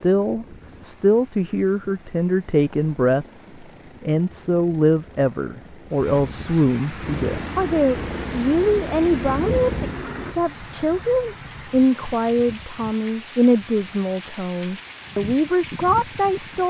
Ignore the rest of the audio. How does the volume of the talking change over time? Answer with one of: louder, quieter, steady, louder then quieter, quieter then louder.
steady.